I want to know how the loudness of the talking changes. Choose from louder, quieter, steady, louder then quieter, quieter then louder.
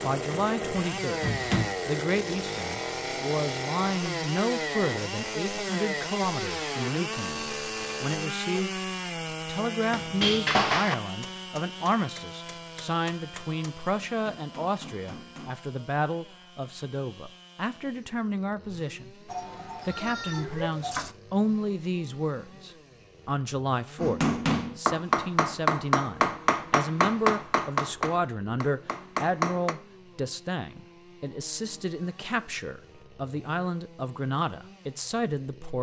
steady.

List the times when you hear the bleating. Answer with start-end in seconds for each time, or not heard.
19.2-21.1.